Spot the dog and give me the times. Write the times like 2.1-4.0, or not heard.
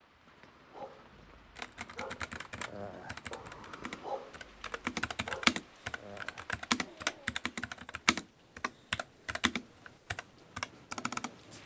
0.3-7.4.